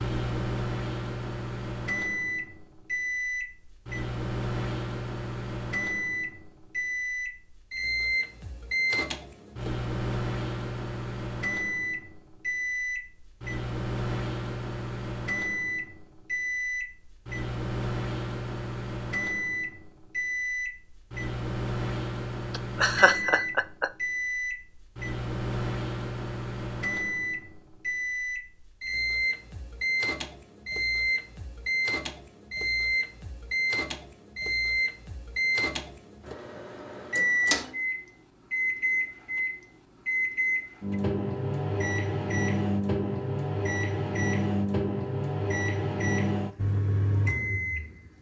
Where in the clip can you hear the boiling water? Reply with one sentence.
The boiling water can't be heard in this clip.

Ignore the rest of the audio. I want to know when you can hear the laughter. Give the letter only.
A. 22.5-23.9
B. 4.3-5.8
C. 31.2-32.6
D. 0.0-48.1
A.